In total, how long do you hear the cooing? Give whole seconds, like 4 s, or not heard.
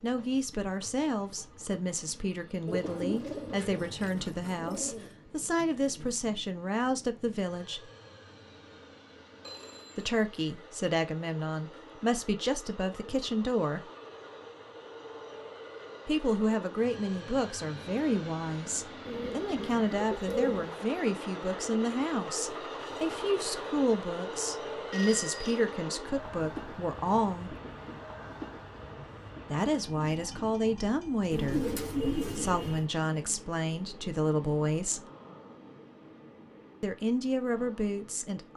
6 s.